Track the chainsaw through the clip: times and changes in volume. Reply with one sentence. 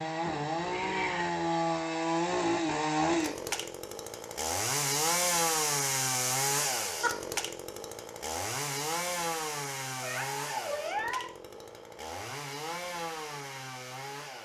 The chainsaw can be heard from 0.0 to 14.4 s, getting quieter.